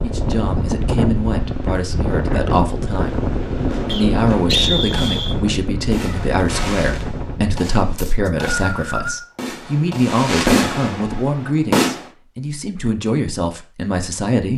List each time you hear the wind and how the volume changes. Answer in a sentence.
The wind can be heard from 0.0 to 7.7 s, getting quieter.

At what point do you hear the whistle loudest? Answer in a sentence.
The volume of the whistle peaks at 5 seconds.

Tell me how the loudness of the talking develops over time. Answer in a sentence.
The loudness of the talking stays about the same.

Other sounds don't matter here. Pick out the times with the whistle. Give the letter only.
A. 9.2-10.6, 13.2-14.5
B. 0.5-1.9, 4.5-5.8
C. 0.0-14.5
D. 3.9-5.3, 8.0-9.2
D.